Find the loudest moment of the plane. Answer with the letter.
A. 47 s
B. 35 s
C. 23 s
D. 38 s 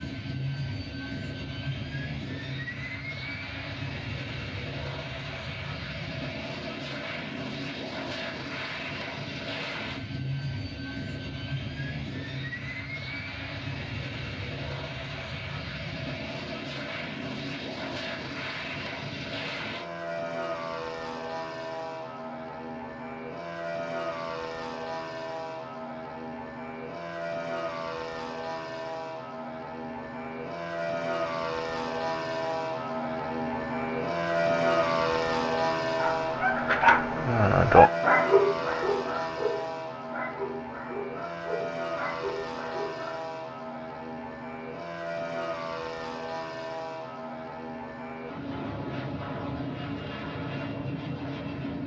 B.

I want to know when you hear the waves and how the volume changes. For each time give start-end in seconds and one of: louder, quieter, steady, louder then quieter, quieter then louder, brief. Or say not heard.
not heard.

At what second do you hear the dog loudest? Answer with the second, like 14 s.
38 s.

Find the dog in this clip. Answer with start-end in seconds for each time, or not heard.
36.0-43.2.